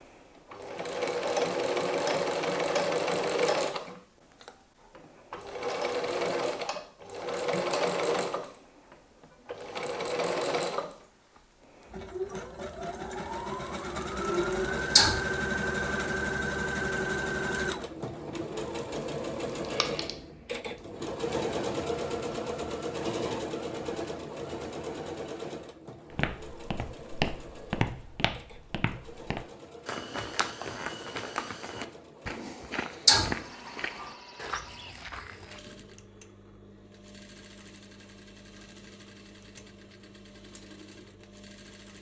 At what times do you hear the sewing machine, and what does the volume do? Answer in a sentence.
You can hear the sewing machine from 0.0 to 41.9 s, getting quieter.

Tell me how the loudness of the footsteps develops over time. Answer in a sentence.
The loudness of the footsteps goes down.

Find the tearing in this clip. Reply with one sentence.
You can hear the tearing from 19.6 to 20.1 s.